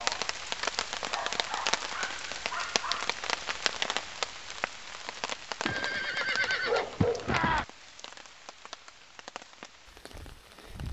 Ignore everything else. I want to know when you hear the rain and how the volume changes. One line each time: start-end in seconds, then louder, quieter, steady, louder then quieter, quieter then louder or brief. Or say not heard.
0.0-10.8 quieter.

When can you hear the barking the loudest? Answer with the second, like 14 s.
7 s.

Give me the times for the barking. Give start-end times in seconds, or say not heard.
1.1-3.1, 6.7-7.3.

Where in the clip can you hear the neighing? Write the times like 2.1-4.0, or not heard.
5.7-7.7.